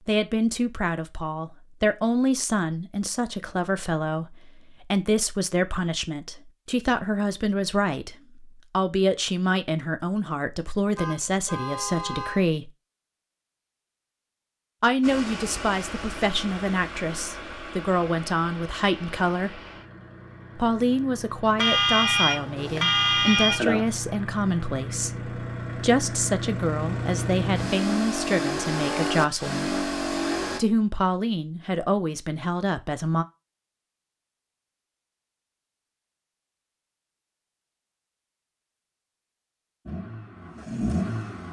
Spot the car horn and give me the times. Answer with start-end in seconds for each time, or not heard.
10.9-12.4, 21.6-23.9.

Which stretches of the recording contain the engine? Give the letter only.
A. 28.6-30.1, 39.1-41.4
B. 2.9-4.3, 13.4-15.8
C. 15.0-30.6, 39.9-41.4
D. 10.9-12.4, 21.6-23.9
C.